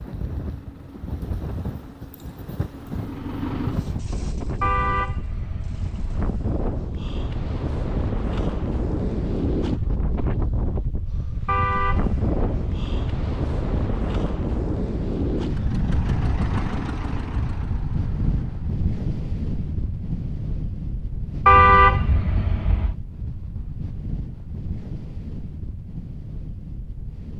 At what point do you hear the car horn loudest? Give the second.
22 s.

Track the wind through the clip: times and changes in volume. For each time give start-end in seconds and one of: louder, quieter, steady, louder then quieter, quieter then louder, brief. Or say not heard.
0.0-27.3 louder then quieter.